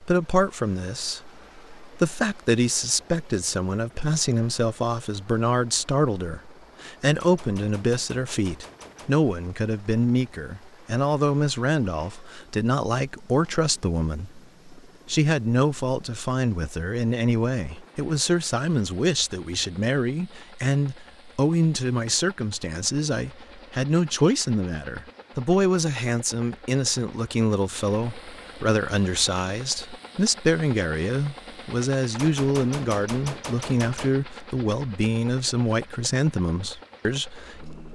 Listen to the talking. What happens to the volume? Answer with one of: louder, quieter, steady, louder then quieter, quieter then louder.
steady.